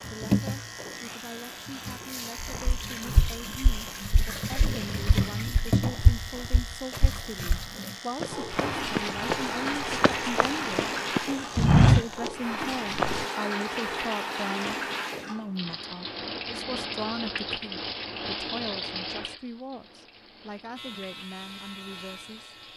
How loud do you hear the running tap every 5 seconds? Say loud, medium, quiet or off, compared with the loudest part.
loud, loud, loud, loud, quiet.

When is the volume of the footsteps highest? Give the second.
12 s.